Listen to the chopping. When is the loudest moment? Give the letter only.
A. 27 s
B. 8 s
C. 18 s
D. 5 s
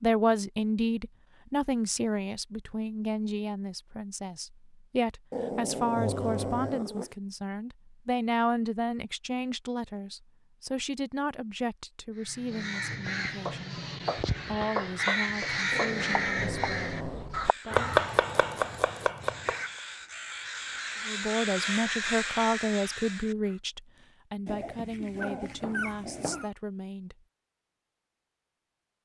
C.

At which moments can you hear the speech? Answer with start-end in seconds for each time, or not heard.
0.0-13.8, 14.4-17.9, 21.1-27.1.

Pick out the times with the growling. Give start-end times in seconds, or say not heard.
5.3-7.1, 15.7-17.4, 24.4-26.5.